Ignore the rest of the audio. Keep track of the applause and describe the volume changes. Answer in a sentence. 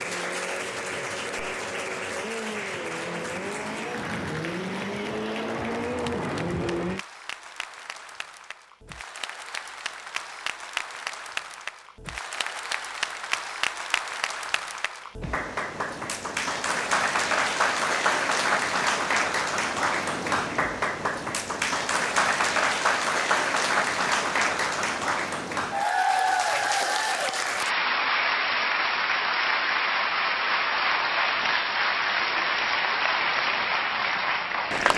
The volume of the applause goes up.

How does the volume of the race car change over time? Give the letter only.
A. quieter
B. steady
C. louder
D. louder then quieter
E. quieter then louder
C.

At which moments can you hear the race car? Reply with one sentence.
You can hear the race car from 0.0 to 7.0 s.